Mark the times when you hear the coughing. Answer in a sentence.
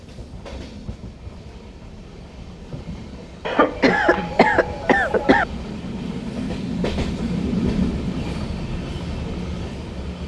The coughing can be heard from 3.5 to 5.5 s.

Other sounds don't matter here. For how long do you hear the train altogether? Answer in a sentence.
The train can be heard for 10 seconds in total.